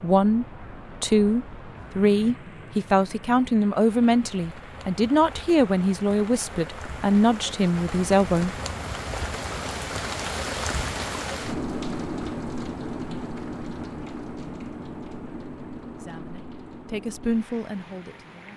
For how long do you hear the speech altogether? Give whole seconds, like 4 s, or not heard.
11 s.